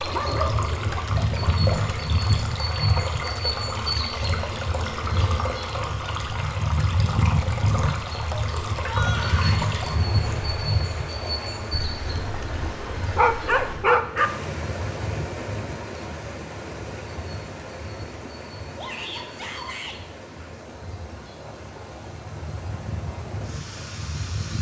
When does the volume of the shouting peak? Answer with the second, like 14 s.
9 s.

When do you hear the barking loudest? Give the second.
14 s.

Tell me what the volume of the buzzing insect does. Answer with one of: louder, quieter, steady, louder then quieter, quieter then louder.
quieter.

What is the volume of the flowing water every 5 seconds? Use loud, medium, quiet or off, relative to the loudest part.
loud, loud, loud, medium, medium.